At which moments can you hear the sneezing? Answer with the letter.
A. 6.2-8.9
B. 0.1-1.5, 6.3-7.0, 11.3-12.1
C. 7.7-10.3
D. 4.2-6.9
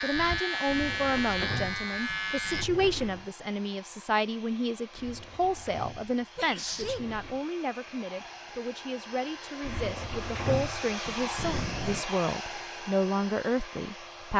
B.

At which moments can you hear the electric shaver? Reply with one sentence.
You can hear the electric shaver from 0.0 to 2.6 s.